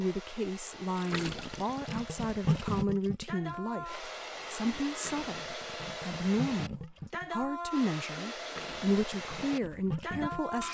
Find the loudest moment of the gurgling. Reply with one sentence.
The loudest moment of the gurgling is at 3 seconds.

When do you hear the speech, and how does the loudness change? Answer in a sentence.
The speech can be heard from 0.0 to 10.6 s, at a steady volume.